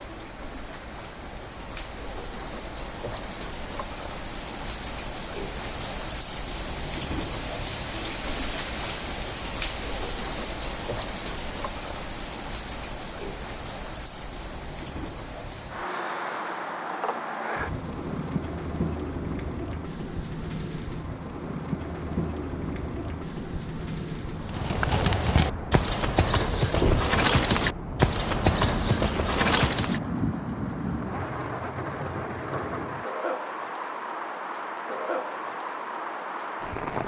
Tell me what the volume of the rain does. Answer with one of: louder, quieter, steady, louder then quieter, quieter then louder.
steady.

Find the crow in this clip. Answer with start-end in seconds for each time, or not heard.
not heard.